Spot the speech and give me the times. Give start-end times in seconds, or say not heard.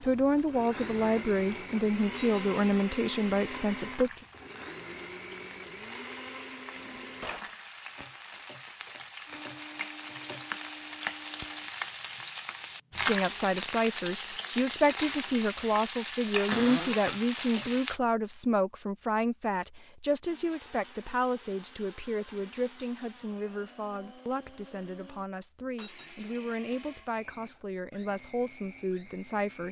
0.0-4.1, 12.9-29.6.